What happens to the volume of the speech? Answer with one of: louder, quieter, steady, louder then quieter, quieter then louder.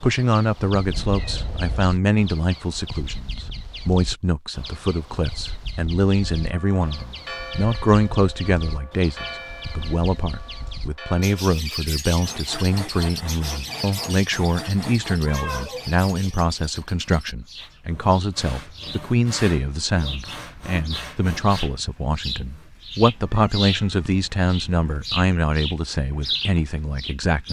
steady.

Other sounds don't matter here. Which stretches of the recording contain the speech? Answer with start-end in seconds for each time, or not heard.
0.0-27.4.